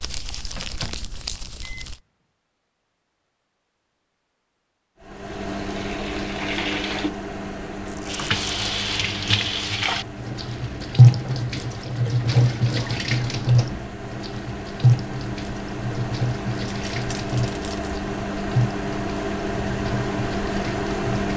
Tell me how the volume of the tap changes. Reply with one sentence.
The loudness of the tap goes up, then down.